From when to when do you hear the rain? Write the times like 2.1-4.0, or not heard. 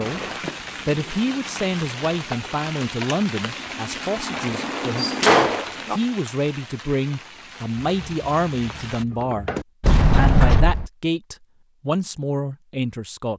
0.0-9.1.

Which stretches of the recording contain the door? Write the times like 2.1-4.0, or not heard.
0.4-1.6, 5.0-6.0, 9.8-10.9.